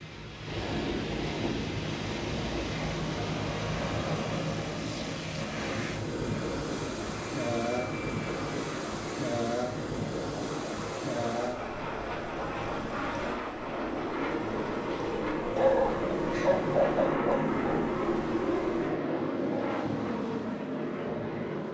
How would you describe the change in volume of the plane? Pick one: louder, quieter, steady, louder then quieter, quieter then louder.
louder.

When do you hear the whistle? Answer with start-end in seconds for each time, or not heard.
not heard.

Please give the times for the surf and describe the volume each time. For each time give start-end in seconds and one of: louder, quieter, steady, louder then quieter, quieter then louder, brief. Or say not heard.
0.0-21.7 quieter.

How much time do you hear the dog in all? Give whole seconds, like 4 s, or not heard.
2 s.